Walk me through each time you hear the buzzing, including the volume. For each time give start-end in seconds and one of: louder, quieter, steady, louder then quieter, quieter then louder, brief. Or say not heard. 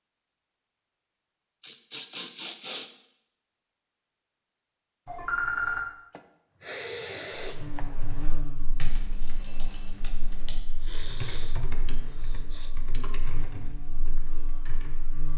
7.4-15.3 quieter then louder.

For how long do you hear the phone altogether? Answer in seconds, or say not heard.
2 s.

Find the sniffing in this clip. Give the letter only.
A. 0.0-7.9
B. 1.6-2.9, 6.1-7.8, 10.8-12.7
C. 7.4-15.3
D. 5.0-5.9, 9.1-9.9
B.